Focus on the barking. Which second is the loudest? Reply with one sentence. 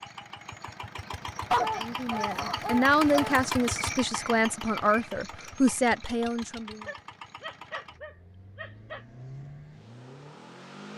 The volume of the barking peaks at 2 seconds.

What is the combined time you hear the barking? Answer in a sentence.
The barking can be heard for 4 seconds in total.